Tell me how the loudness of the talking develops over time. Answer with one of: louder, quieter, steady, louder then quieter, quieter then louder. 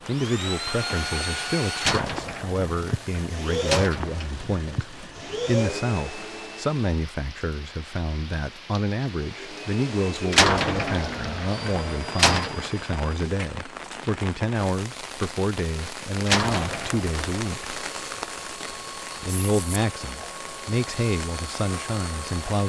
steady.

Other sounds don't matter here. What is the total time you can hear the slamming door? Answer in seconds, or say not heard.
6 s.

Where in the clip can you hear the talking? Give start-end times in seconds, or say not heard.
0.1-17.8, 19.2-22.6.